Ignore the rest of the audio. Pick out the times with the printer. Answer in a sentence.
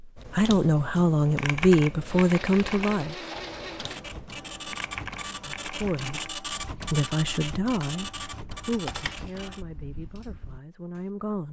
You can hear the printer from 2.0 to 9.7 s.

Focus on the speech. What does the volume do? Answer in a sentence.
The loudness of the speech goes down.